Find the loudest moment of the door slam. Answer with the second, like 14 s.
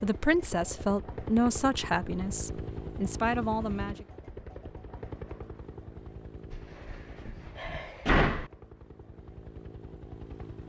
8 s.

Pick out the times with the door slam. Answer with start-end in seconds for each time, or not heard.
6.5-8.5.